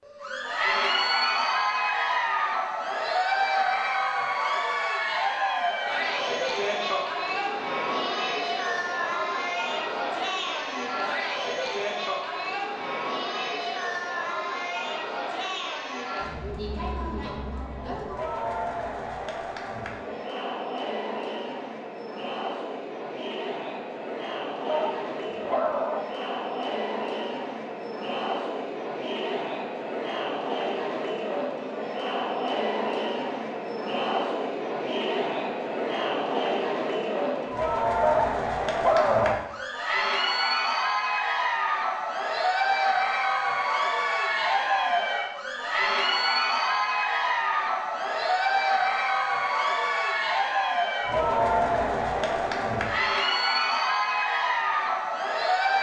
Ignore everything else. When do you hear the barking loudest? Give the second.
39 s.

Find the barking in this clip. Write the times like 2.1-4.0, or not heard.
24.6-26.1, 38.0-39.5.